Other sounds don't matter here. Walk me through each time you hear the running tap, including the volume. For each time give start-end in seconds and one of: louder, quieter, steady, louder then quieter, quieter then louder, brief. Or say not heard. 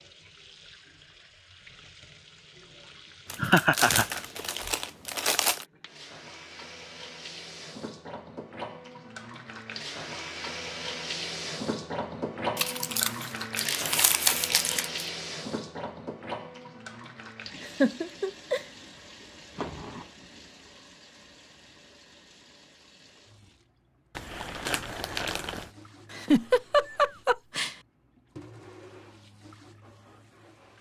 0.0-30.7 louder then quieter.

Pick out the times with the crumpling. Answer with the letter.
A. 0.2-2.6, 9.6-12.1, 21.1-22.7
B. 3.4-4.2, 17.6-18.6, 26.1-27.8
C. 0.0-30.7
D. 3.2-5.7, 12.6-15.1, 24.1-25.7
D.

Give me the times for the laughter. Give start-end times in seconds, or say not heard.
3.4-4.2, 17.6-18.6, 26.1-27.8.